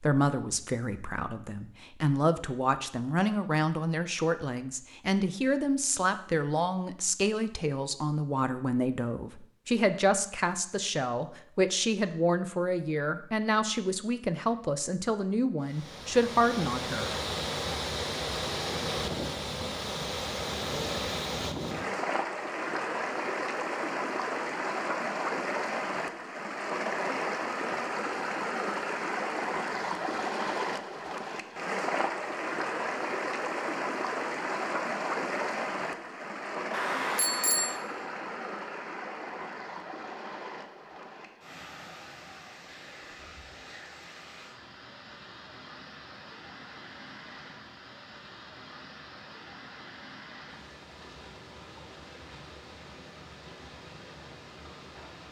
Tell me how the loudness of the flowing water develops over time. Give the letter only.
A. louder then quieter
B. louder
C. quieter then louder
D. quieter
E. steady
D.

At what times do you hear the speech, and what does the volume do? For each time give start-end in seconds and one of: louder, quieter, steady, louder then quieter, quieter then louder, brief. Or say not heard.
0.0-17.1 steady.